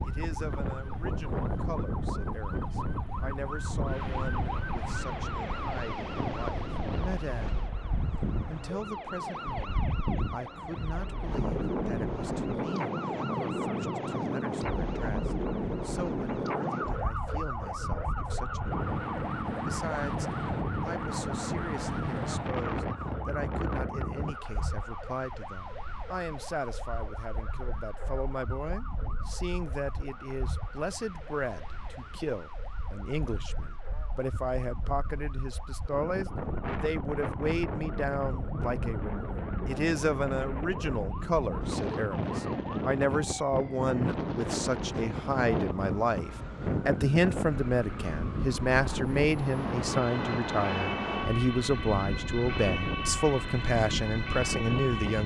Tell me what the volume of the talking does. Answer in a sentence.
The volume of the talking goes up.